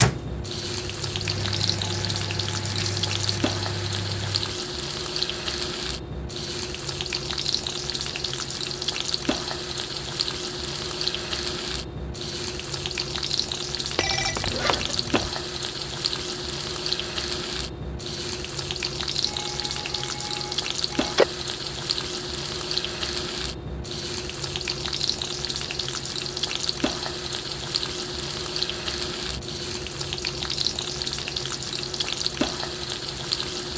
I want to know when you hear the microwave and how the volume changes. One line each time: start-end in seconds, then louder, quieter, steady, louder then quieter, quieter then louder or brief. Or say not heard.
0.0-4.6 louder.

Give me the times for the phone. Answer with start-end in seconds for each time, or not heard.
13.9-15.3, 19.2-21.2.